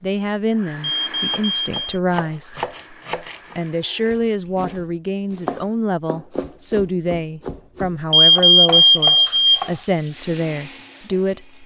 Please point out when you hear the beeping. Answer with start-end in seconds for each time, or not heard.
0.8-1.9, 8.1-9.7.